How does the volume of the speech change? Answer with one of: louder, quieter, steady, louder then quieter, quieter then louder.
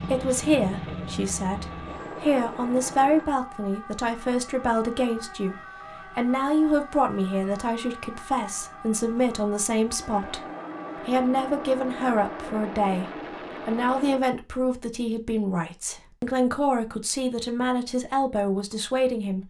steady.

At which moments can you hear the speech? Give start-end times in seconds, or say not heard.
0.0-13.1, 13.7-19.4.